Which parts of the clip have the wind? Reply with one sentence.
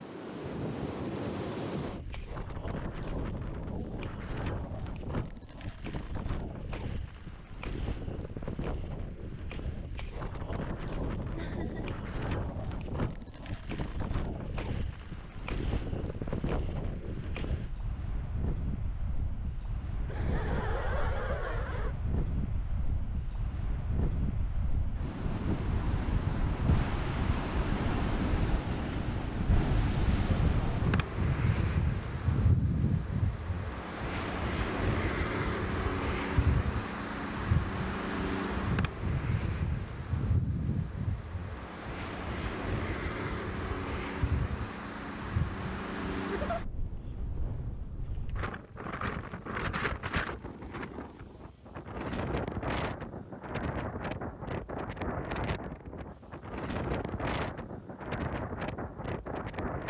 You can hear the wind from 0.0 to 59.8 s.